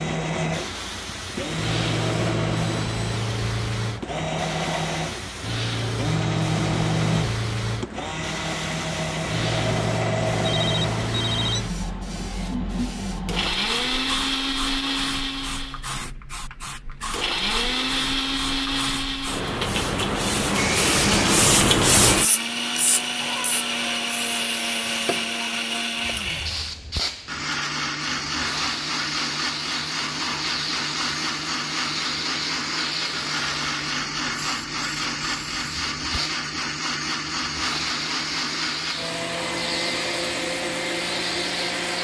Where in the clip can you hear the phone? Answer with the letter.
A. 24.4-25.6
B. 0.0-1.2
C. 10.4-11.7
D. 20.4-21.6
C.